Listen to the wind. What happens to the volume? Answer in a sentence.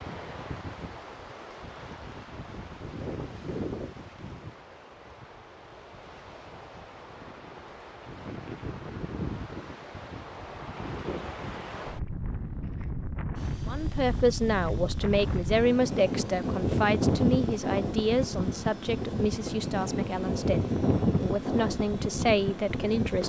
The volume of the wind goes up.